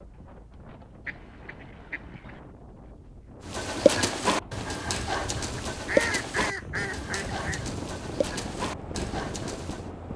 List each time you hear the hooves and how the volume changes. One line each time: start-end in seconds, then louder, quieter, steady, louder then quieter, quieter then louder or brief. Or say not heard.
3.5-9.8 quieter.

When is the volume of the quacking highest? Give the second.
6 s.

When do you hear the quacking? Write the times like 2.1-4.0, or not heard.
1.1-2.4, 5.5-7.7.